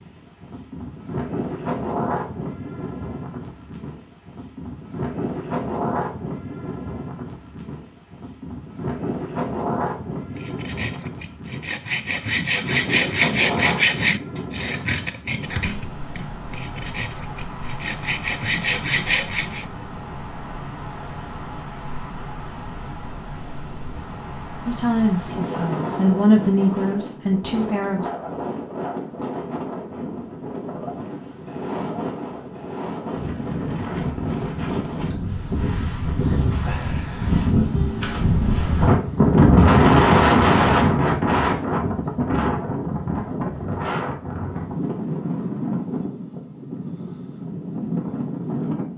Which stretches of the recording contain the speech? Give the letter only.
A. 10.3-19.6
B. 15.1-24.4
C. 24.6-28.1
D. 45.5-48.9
C.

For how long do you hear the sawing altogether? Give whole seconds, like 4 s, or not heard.
9 s.